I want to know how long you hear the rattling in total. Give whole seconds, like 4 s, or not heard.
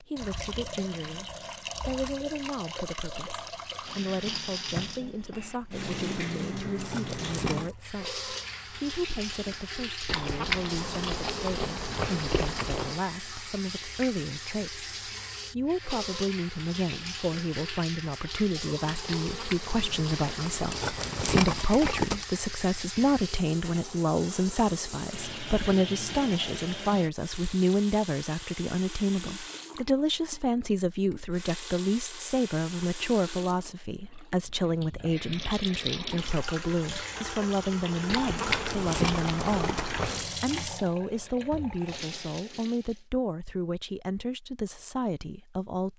4 s.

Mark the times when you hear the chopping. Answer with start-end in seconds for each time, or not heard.
not heard.